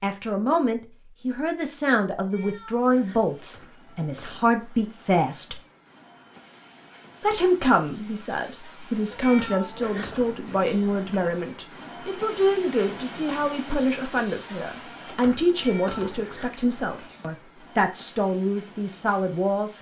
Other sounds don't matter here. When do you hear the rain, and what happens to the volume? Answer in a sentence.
The rain can't be heard in this clip.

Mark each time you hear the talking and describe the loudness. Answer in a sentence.
You can hear the talking from 0.0 to 5.6 s, getting quieter then louder; and from 7.2 to 19.7 s, at a steady volume.